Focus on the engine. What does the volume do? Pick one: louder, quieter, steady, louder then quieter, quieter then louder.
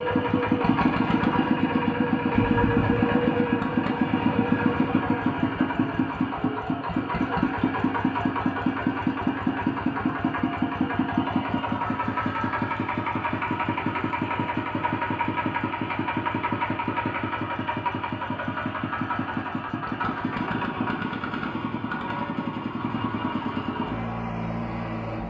quieter.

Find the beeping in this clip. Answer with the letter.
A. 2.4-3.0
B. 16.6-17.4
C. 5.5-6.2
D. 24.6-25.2
A.